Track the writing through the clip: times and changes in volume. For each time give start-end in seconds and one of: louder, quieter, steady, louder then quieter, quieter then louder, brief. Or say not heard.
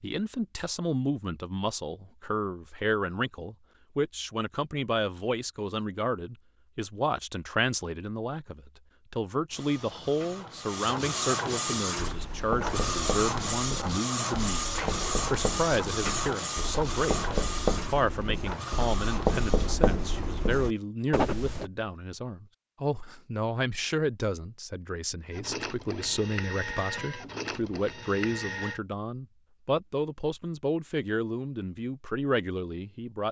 11.7-21.6 louder.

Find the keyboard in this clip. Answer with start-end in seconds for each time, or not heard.
not heard.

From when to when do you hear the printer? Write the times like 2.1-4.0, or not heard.
9.5-19.8, 25.3-28.8.